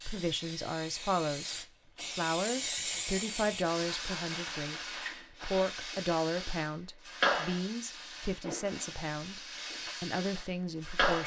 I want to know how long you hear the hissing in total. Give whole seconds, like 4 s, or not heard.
11 s.